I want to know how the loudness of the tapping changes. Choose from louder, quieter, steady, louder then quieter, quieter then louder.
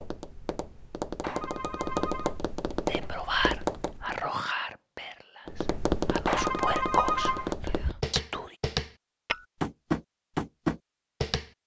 louder.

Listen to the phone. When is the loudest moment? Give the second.
7 s.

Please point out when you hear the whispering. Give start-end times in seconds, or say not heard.
2.9-8.6.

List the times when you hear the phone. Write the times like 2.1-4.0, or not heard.
1.2-2.4, 6.2-7.5.